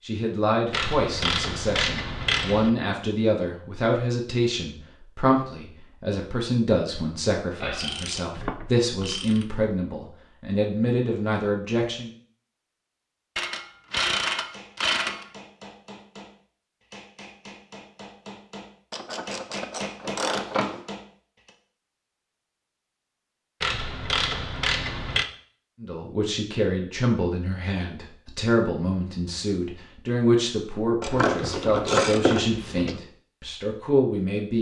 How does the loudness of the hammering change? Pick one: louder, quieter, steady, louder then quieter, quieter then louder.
louder.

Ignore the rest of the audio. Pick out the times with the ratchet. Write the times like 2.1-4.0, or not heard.
0.7-2.7, 7.6-9.4, 13.3-15.2, 18.9-20.8, 23.6-25.2, 31.0-33.0.